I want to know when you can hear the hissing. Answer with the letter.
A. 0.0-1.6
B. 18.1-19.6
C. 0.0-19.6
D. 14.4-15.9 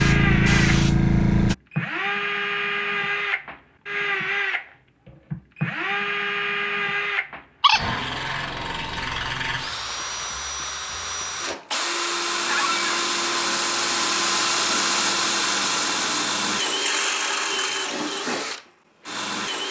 A.